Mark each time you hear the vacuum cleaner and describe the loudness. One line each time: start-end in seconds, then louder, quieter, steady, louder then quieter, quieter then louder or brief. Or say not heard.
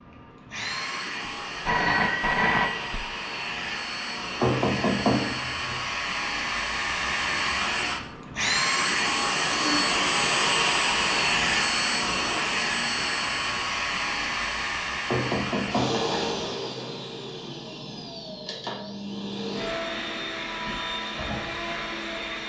0.0-22.4 louder then quieter.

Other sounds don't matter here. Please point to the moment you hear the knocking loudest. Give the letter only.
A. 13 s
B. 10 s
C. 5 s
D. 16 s
C.